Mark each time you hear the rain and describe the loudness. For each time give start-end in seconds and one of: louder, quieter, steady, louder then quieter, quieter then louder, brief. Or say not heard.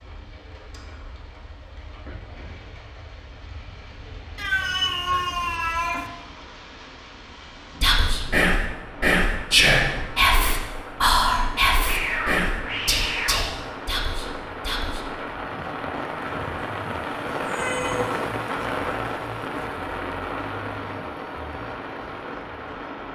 0.0-23.1 louder.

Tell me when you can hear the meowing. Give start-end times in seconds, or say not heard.
4.3-6.1, 11.8-13.7, 17.4-18.2.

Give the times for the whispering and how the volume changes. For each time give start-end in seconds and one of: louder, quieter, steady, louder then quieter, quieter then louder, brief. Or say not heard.
7.8-15.1 quieter.